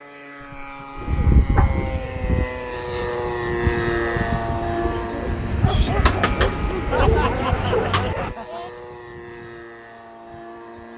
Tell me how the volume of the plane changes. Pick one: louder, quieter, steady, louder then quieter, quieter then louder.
louder then quieter.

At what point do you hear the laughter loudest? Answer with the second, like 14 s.
7 s.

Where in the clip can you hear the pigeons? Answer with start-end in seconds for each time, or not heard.
0.9-8.3.